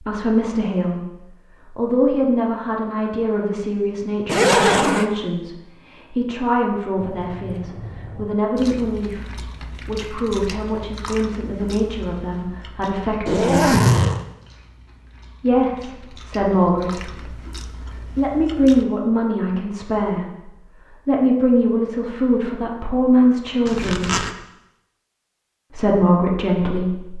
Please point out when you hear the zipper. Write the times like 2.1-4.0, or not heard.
4.2-5.0, 13.2-14.2, 23.6-24.4.